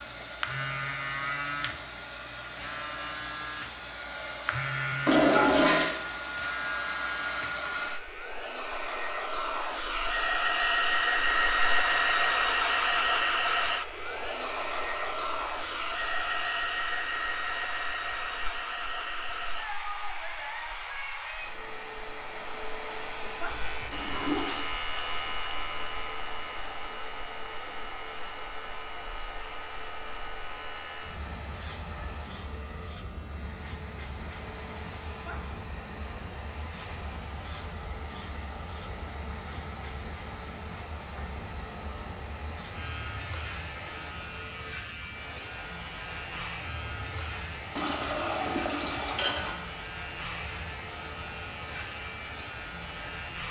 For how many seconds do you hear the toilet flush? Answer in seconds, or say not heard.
4 s.